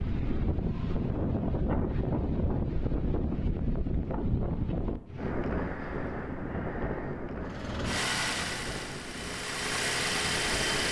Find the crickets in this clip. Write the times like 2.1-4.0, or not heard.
not heard.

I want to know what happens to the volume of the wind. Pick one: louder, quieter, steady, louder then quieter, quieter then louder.
quieter.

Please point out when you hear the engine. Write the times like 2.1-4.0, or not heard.
7.4-10.8.